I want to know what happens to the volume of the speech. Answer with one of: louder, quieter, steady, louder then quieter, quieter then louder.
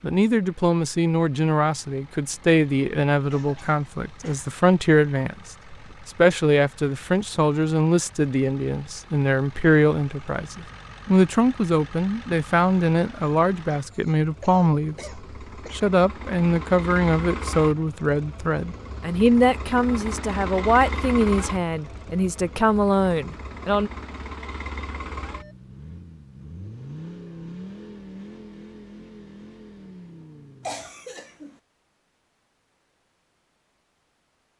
steady.